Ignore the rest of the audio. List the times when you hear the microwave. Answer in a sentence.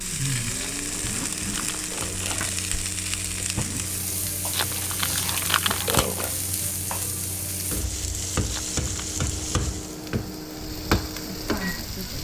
You can hear the microwave from 0.0 to 12.0 s.